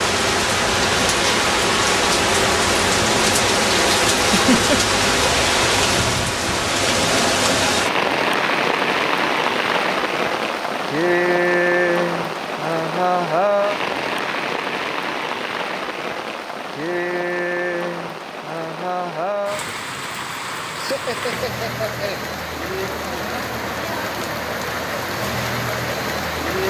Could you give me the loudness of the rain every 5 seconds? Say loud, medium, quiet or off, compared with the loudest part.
loud, loud, loud, medium, medium, medium.